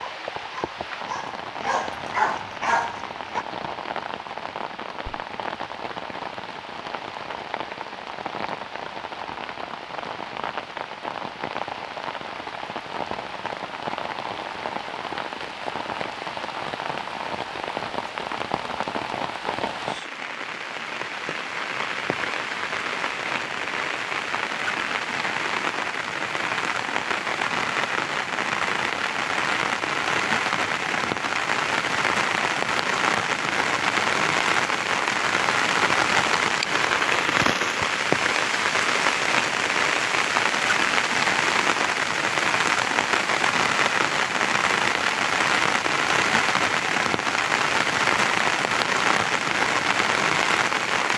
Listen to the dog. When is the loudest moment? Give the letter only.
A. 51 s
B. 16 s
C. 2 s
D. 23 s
C.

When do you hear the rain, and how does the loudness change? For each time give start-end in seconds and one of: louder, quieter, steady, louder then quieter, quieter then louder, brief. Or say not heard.
0.0-51.1 louder.